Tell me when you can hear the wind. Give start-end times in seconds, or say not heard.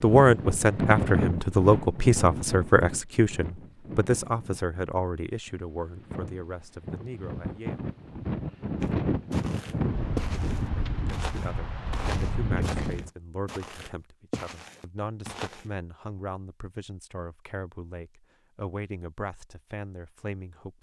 0.0-13.1.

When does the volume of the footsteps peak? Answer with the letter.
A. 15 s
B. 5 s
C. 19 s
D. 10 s
D.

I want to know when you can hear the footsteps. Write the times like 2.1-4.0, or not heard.
8.8-15.7.